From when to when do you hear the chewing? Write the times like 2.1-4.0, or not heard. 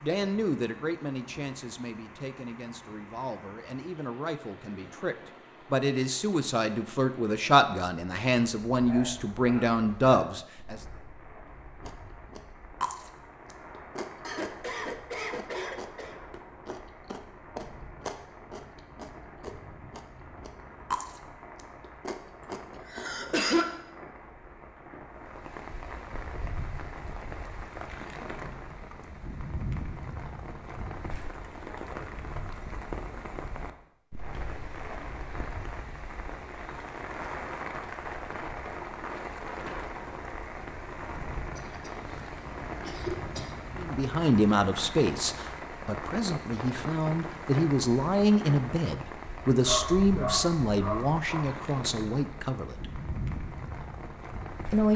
11.8-23.2.